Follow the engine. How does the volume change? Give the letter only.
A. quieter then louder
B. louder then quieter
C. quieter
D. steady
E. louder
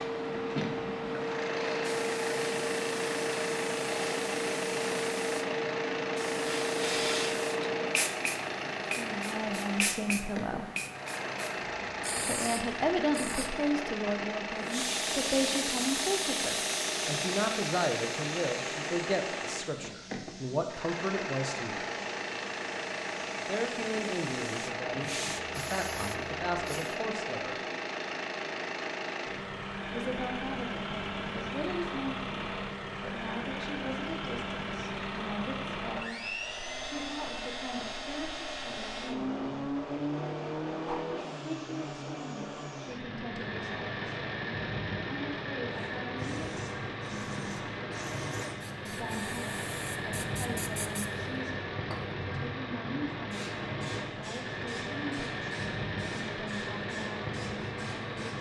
D.